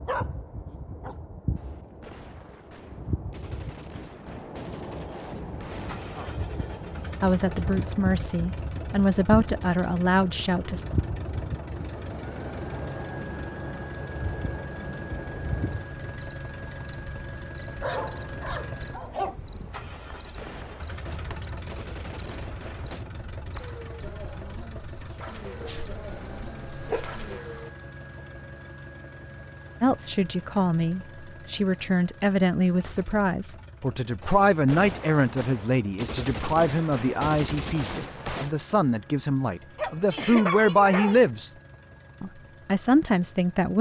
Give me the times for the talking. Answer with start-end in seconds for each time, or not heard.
7.2-10.8, 29.8-41.5, 42.2-43.7.